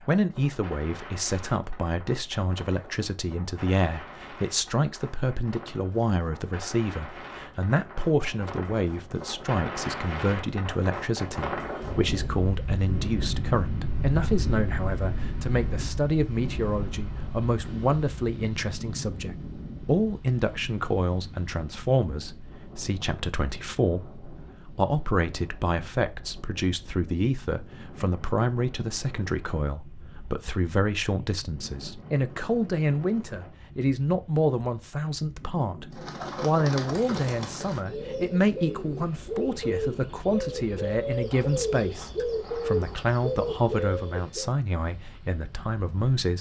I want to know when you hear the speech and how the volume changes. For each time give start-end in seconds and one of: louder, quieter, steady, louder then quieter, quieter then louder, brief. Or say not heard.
0.1-46.3 steady.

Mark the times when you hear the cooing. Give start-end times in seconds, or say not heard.
35.9-44.5.